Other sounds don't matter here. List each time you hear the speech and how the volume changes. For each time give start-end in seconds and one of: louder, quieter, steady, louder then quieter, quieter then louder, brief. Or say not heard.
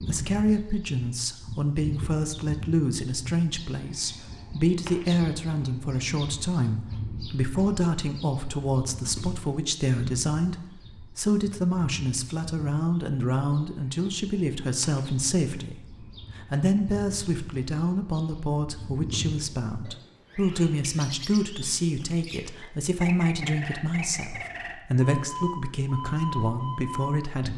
0.1-27.5 steady.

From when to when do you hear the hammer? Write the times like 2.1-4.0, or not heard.
not heard.